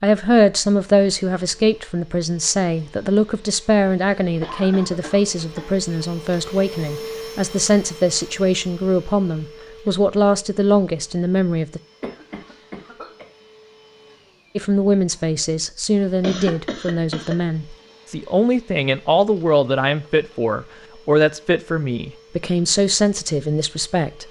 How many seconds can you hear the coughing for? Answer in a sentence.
You can hear the coughing for 4 seconds altogether.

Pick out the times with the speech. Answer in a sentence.
You can hear the speech from 0.0 to 11.8 s and from 14.6 to 24.2 s.